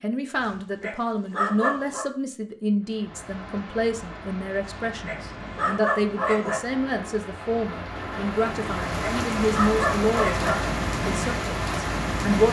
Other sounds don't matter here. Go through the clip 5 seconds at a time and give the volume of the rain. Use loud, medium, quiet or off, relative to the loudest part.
quiet, medium, loud.